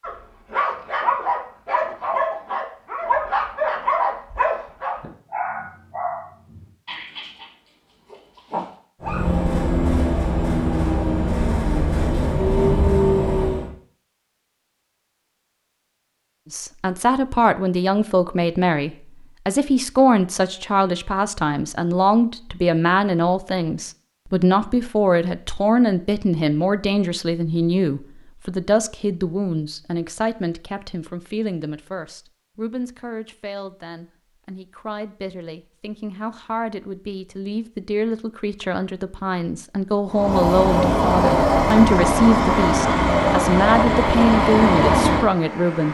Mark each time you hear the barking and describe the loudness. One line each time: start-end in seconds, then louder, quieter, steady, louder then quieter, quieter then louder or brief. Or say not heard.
0.0-9.2 quieter.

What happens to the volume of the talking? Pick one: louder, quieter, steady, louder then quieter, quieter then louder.
quieter then louder.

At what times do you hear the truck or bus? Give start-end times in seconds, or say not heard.
9.0-13.7, 40.0-45.8.